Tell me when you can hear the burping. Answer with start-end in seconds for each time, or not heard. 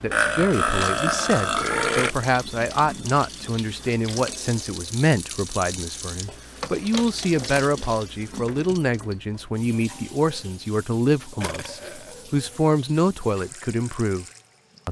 0.1-2.1, 6.6-7.1, 11.4-12.2.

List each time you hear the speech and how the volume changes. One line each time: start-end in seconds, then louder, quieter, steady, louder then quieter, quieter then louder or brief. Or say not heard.
0.0-14.2 steady.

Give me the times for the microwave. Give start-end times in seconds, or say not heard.
not heard.